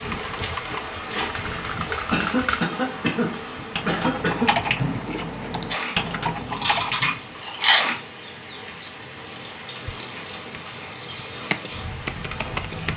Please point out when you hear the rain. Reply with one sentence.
The rain can be heard from 0.0 to 12.9 s.